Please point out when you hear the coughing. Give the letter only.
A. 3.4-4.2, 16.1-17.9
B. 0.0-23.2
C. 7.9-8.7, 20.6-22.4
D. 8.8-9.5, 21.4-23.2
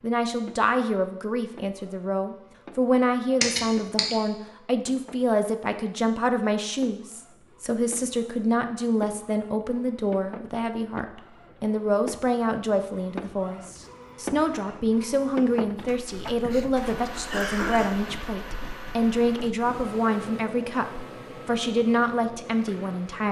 A.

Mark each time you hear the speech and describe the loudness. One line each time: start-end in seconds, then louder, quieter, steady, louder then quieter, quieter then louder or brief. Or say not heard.
0.0-23.2 steady.